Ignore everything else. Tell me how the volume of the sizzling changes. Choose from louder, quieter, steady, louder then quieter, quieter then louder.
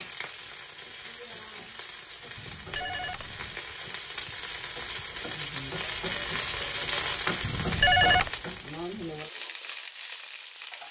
louder then quieter.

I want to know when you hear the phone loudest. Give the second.
8 s.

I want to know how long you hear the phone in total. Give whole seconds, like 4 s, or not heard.
2 s.